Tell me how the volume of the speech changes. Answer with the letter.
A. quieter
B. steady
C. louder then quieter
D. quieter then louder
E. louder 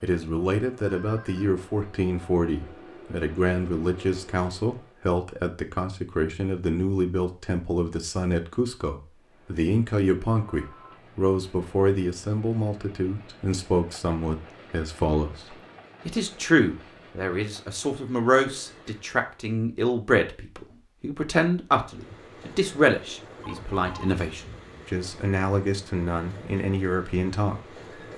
B.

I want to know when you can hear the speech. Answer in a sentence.
The speech can be heard from 0.0 to 28.1 s.